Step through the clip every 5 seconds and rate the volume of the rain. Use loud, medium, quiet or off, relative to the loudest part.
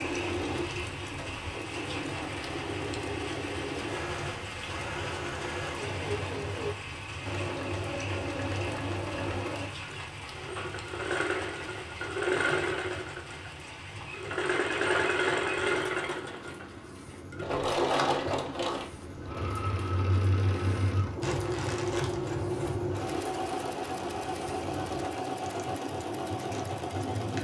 loud, loud, medium, medium, loud, loud.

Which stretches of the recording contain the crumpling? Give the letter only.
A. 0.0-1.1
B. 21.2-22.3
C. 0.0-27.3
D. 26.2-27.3
B.